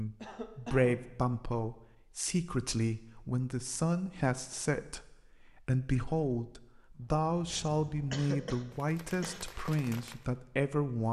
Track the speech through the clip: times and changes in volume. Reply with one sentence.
The speech can be heard from 0.0 to 11.0 s, at a steady volume.